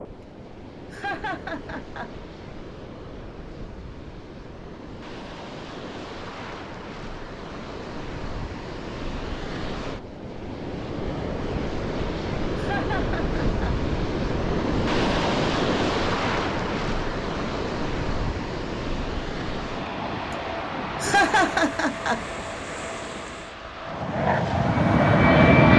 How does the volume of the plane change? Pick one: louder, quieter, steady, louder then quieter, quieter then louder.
louder.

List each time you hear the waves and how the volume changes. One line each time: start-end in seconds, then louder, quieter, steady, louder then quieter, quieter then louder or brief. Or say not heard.
0.0-25.7 louder then quieter.